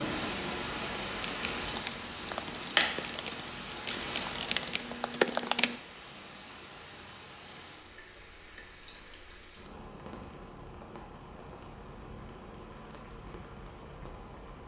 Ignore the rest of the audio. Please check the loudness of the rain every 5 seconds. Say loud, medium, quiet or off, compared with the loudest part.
loud, quiet, quiet.